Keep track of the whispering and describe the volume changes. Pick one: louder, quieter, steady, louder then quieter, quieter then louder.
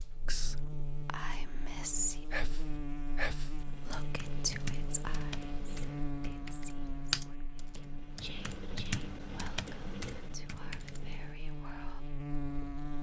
quieter.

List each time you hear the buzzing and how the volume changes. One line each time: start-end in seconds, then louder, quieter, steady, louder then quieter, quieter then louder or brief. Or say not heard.
0.0-12.9 quieter then louder.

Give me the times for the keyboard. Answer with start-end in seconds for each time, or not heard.
3.6-11.3.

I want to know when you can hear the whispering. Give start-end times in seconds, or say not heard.
0.2-12.0.